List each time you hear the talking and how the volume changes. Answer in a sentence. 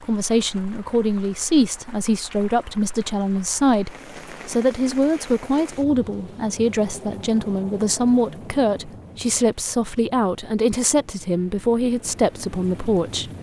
You can hear the talking from 0.0 to 13.3 s, at a steady volume.